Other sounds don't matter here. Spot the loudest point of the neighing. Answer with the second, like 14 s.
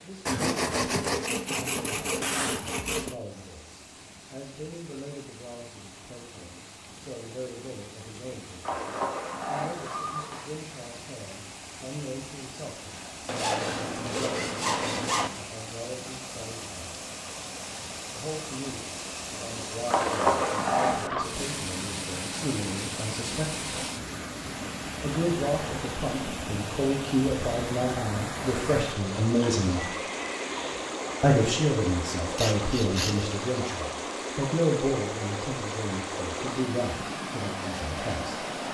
20 s.